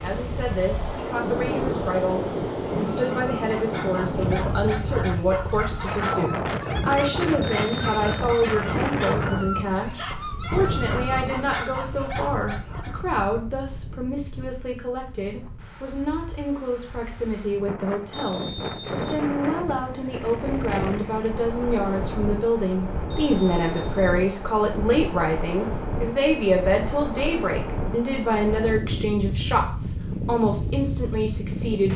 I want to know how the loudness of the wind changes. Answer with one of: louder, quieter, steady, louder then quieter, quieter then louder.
quieter then louder.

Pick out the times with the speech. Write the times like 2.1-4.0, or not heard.
0.0-31.9.